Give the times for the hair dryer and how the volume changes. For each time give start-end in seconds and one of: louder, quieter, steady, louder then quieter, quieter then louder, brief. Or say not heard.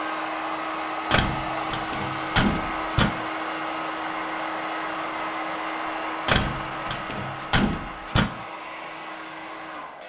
0.0-10.0 quieter.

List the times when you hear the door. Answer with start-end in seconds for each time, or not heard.
1.1-3.1, 6.2-8.3.